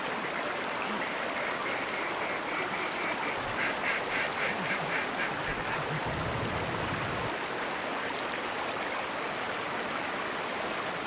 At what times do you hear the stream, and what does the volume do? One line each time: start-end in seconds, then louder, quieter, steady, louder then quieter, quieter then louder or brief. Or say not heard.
0.0-11.0 steady.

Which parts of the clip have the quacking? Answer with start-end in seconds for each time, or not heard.
0.0-7.3.